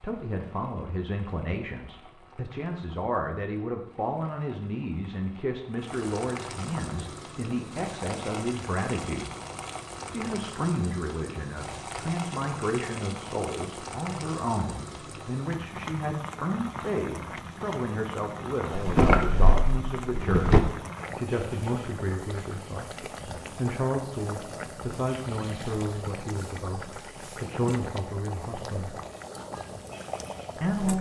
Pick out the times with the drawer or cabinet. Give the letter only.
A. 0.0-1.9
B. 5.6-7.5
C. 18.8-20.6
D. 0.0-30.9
C.